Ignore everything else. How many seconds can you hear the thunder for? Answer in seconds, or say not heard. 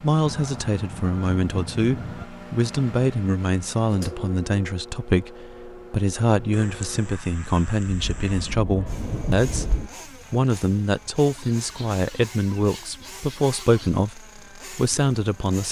2 s.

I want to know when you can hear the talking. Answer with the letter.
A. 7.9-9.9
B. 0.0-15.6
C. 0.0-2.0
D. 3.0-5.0
B.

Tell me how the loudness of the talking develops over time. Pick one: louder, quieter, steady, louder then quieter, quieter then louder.
steady.